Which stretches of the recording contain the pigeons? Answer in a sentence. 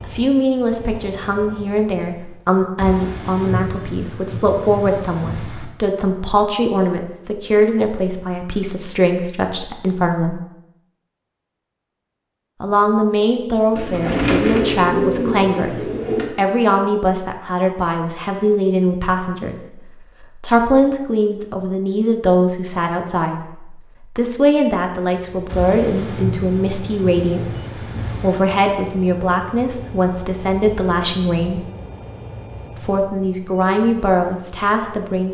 The pigeons can be heard from 13.8 to 16.3 s.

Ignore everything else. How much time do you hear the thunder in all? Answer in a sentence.
You can hear the thunder for 6 seconds altogether.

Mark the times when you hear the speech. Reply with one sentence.
You can hear the speech from 0.1 to 10.4 s, from 12.6 to 19.8 s, from 20.4 to 31.6 s and from 32.9 to 35.2 s.